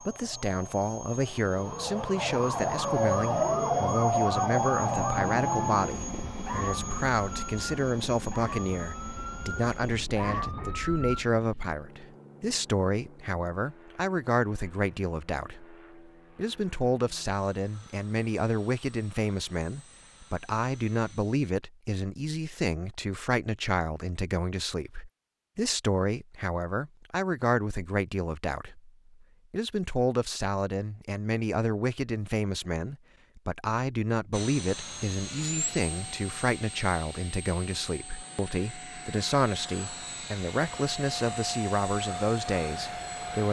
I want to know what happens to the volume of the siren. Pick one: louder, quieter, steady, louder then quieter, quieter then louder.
louder then quieter.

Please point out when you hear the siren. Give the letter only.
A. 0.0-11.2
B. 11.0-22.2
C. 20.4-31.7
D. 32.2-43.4
A.